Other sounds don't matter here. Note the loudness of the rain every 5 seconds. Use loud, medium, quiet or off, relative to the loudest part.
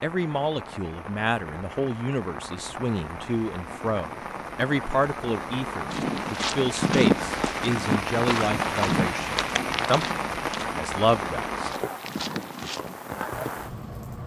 medium, loud, loud.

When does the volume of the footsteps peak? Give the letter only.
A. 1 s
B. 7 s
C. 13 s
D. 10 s
B.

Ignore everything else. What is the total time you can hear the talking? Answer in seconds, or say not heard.
12 s.